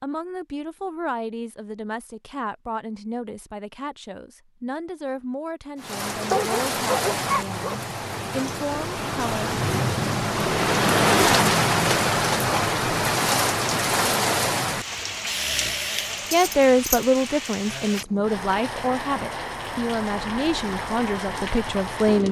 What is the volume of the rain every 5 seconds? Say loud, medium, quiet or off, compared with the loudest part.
off, medium, loud, medium, medium.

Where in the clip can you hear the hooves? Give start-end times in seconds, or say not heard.
not heard.